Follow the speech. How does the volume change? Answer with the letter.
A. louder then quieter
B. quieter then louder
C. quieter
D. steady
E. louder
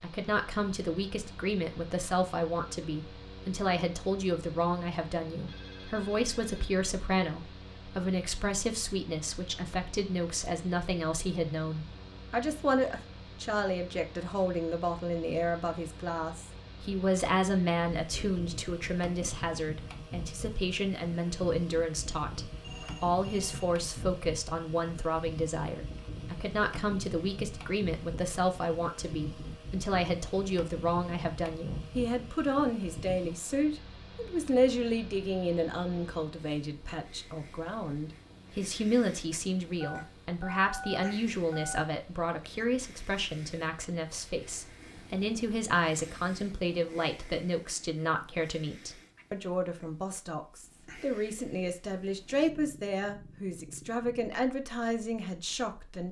D.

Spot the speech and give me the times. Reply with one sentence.
You can hear the speech from 0.0 to 56.0 s.